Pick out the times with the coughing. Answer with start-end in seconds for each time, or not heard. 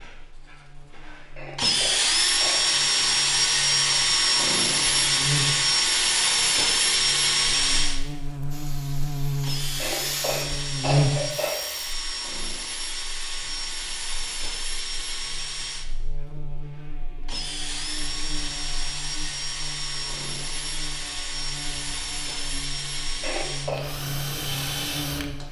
1.4-2.7, 9.8-11.6, 23.2-23.8.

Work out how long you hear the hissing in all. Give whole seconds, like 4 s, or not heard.
2 s.